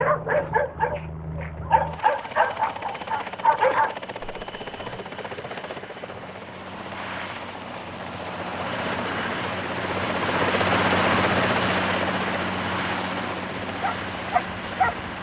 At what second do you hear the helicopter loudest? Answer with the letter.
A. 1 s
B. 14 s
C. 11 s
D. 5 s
C.